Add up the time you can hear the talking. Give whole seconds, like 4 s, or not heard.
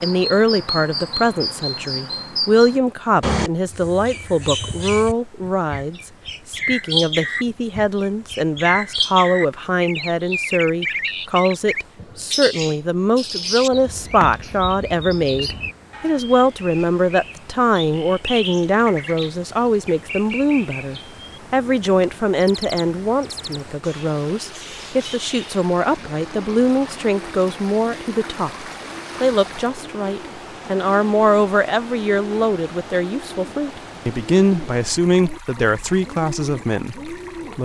37 s.